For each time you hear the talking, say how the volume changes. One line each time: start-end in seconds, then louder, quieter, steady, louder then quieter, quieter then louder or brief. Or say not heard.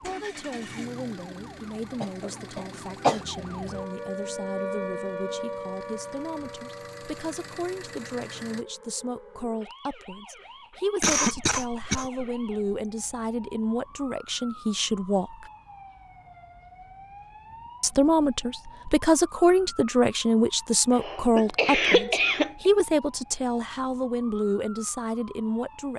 0.0-15.5 louder
17.8-25.9 quieter.